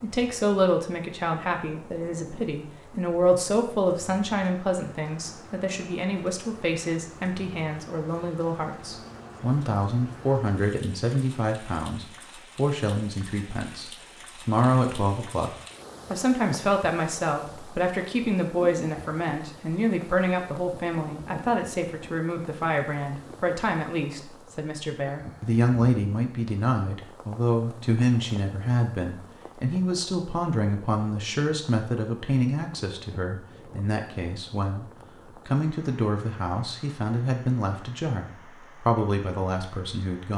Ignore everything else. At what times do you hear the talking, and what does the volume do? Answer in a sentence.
The talking can be heard from 0.0 to 40.3 s, at a steady volume.